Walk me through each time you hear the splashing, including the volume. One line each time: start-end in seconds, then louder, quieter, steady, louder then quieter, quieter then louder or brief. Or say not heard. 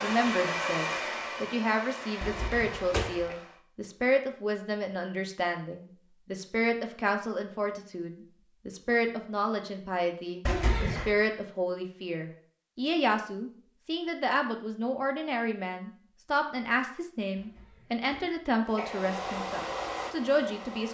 not heard.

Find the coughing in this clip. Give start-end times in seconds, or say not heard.
2.2-3.4, 10.4-11.1, 17.4-19.0.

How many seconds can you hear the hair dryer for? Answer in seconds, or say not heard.
6 s.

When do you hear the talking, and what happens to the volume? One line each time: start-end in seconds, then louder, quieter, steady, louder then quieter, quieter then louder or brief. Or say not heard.
0.0-20.8 steady.